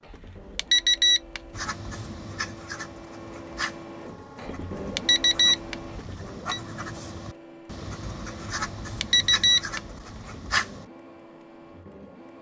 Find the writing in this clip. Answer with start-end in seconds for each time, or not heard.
1.5-10.8.